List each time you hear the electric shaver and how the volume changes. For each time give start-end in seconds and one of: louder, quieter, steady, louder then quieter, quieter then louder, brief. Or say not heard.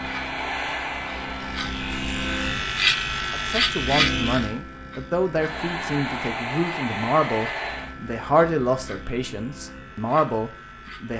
0.0-11.1 louder then quieter.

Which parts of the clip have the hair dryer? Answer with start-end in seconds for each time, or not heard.
0.0-3.6, 5.3-8.0.